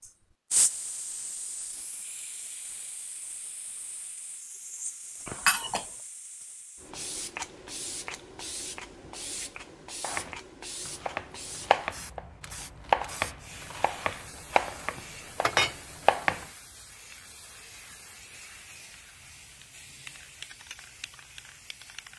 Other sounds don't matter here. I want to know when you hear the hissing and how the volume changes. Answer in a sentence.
The hissing can be heard from 0.0 to 22.1 s, getting quieter.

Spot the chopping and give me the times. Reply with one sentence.
You can hear the chopping from 10.0 to 16.4 s.